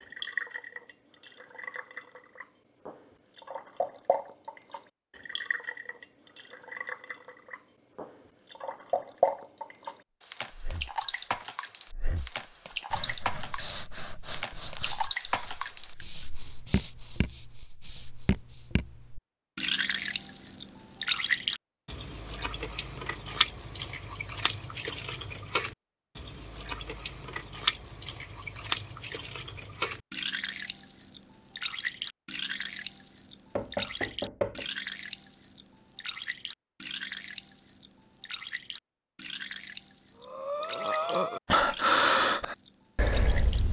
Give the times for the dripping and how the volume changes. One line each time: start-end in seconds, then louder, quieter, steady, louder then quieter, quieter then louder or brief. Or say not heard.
0.0-43.6 louder then quieter.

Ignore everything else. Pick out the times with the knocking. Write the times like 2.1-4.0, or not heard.
33.5-34.6.